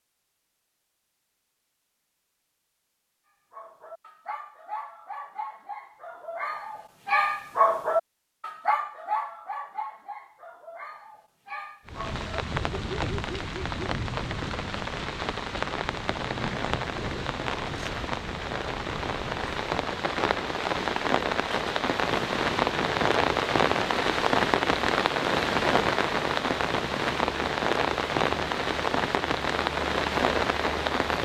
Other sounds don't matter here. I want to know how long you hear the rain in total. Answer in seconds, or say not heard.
19 s.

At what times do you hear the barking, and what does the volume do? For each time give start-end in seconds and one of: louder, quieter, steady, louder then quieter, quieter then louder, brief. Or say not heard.
3.5-13.8 louder then quieter.